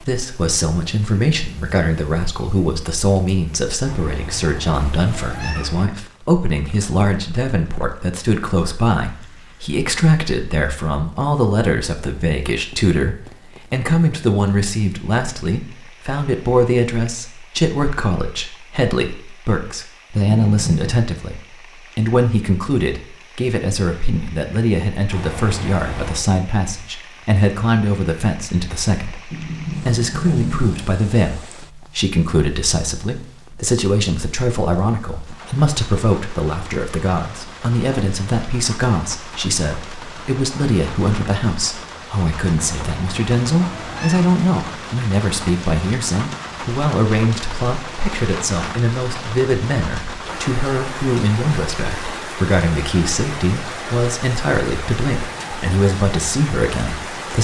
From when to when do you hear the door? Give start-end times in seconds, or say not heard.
20.4-21.0, 29.3-30.8.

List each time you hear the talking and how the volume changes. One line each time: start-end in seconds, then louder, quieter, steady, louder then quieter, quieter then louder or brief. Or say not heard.
0.0-57.4 steady.